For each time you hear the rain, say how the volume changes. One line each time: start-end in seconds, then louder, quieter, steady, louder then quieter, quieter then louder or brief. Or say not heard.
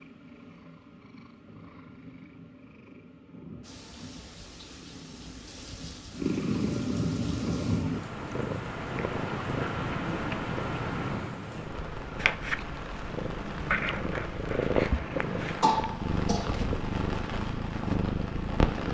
3.6-18.8 louder.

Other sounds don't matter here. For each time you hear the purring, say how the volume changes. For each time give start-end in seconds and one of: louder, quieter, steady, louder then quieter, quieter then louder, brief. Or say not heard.
0.0-18.8 louder.